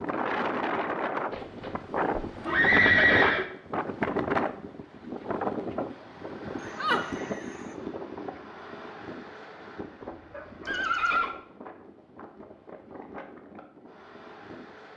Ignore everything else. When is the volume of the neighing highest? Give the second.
3 s.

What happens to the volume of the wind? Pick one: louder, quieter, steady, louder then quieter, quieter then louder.
quieter.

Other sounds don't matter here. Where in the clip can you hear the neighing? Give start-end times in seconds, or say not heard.
1.3-3.5, 6.6-7.5, 10.7-11.3.